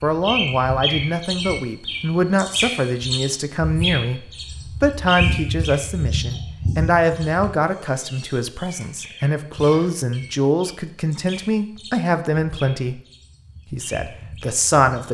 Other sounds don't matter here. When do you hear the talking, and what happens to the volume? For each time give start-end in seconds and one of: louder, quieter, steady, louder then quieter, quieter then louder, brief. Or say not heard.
0.0-13.0 steady
13.7-15.0 brief.